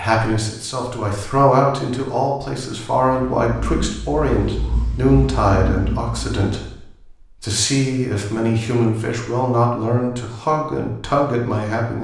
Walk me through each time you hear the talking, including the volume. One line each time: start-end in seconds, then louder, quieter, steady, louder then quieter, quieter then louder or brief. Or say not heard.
0.0-12.0 steady.